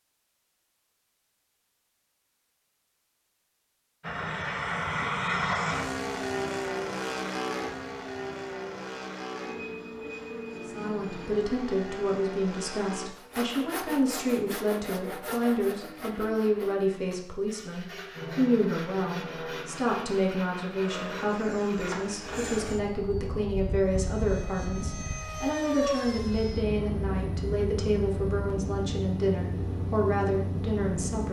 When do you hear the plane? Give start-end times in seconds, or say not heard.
4.0-13.1, 18.1-31.2.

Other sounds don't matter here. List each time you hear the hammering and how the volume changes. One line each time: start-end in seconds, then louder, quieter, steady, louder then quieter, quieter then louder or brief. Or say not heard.
not heard.